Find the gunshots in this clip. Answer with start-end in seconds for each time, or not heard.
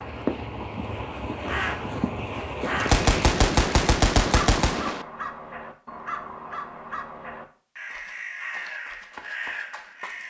2.8-5.0.